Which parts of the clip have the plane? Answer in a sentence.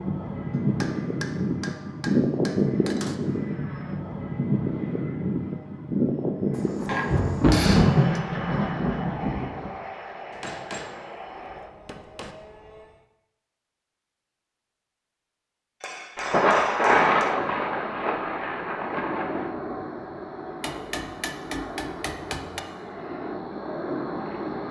You can hear the plane from 0.0 to 13.1 s and from 17.1 to 24.6 s.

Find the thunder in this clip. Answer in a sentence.
You can hear the thunder from 6.5 to 9.8 s and from 16.1 to 19.4 s.